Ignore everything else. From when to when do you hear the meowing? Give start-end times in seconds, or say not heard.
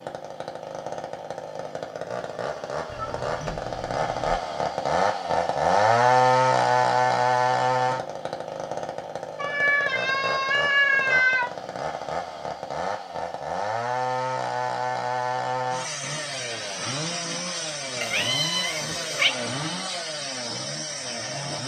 2.9-4.3, 9.3-11.5, 18.0-19.3.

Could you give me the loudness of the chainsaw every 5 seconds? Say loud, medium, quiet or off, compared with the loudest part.
medium, loud, medium, medium, medium.